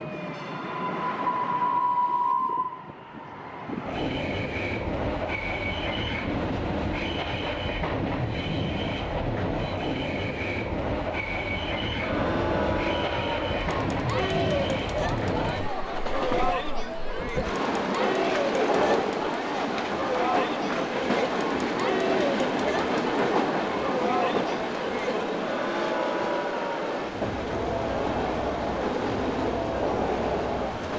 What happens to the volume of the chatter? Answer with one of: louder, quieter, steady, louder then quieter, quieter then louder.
steady.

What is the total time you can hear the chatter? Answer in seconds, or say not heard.
19 s.